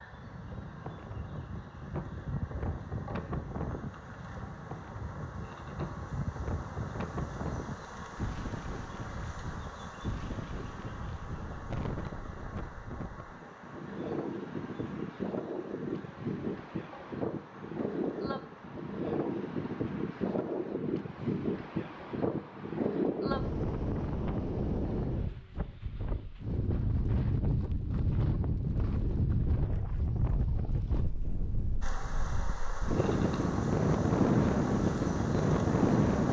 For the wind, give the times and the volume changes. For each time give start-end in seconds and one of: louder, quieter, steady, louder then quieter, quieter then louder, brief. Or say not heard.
0.0-36.2 louder.